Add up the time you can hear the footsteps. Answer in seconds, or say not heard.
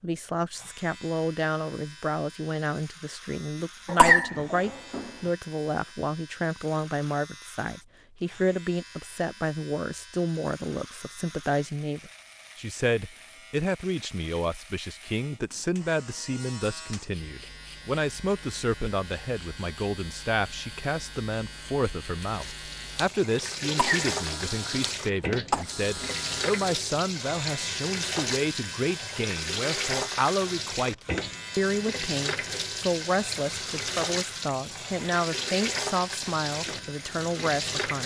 not heard.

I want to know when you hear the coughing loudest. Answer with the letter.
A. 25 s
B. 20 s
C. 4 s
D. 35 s
C.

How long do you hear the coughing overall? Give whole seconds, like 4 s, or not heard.
3 s.